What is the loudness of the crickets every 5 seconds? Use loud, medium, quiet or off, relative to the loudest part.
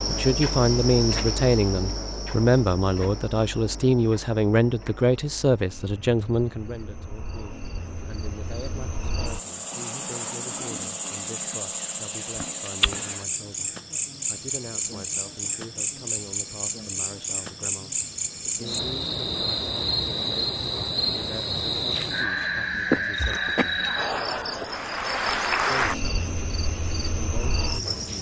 medium, quiet, loud, loud, loud, loud.